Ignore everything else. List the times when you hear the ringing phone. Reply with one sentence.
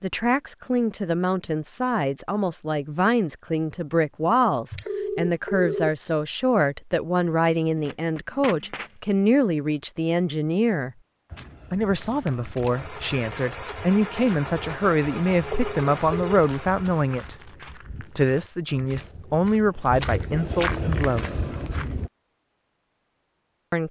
You can hear the ringing phone from 4.7 to 5.9 s and from 15.3 to 16.4 s.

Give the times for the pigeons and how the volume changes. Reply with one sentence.
The pigeons can't be heard in this clip.